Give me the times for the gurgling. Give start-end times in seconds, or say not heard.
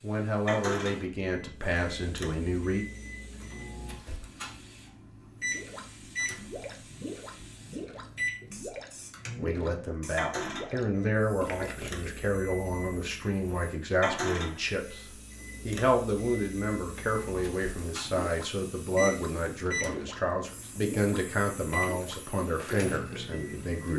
5.5-12.3, 18.0-23.9.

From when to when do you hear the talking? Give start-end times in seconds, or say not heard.
0.0-2.9, 9.3-23.9.